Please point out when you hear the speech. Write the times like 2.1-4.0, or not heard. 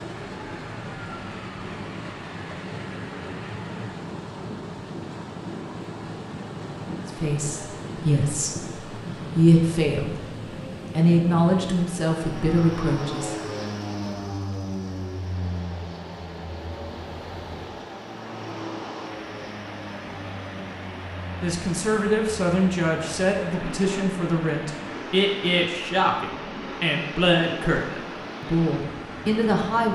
7.0-10.2, 10.9-13.3, 21.4-29.8.